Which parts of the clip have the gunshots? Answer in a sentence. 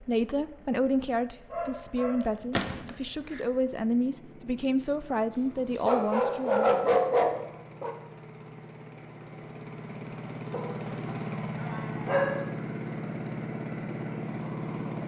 The gunshots can be heard from 2.5 to 3.0 s.